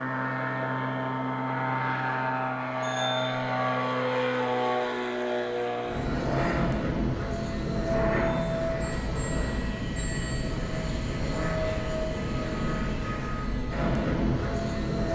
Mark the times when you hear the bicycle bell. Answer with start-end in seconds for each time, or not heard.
2.8-3.4, 8.1-10.6.